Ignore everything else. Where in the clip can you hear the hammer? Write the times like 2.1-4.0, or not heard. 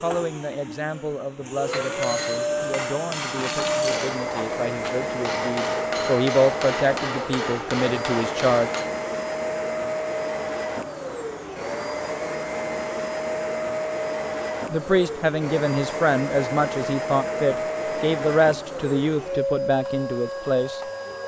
1.6-8.9.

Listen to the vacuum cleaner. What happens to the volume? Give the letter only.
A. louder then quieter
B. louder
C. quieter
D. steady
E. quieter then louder
D.